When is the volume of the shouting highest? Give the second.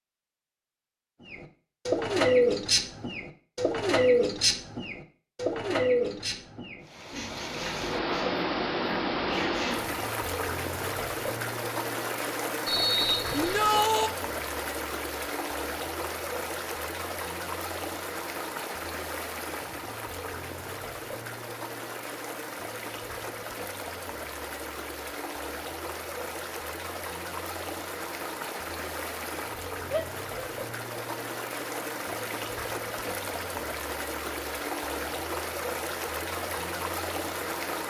14 s.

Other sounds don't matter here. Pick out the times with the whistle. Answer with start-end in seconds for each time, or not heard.
12.7-13.7.